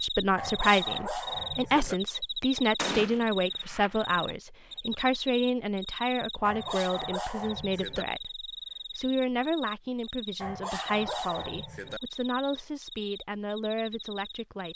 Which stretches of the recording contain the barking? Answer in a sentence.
You can hear the barking from 0.3 to 1.9 s, from 6.5 to 8.1 s and from 10.4 to 12.0 s.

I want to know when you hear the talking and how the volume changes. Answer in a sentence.
The talking can be heard from 0.0 to 14.7 s, getting quieter.